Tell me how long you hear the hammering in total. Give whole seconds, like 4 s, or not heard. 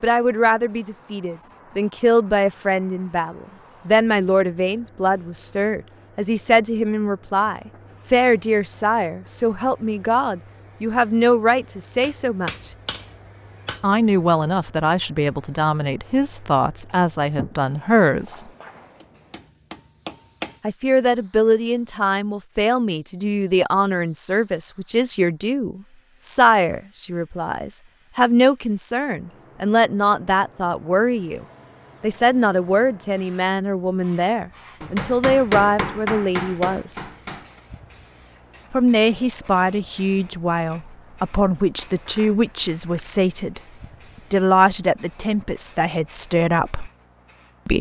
6 s.